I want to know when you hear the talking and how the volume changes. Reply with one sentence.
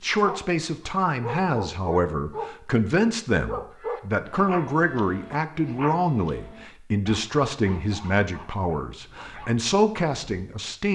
The talking can be heard from 0.0 to 10.9 s, at a steady volume.